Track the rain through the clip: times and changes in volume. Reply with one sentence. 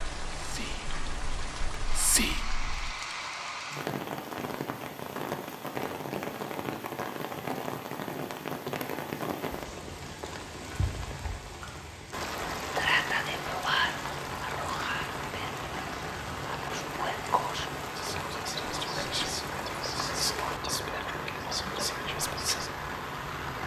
You can hear the rain from 0.0 to 23.6 s, at a steady volume.